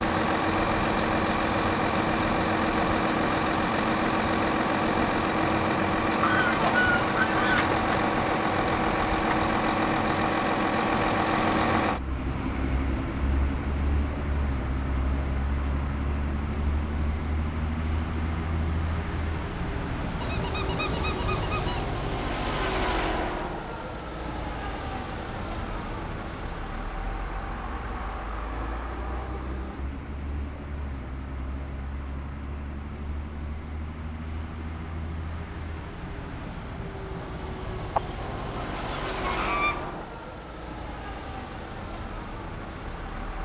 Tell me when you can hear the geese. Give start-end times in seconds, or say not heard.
6.2-7.8, 20.2-21.9, 38.0-40.0.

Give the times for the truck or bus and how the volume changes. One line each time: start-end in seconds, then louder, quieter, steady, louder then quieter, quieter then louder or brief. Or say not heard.
0.0-43.4 quieter.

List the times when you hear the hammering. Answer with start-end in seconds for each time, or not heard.
not heard.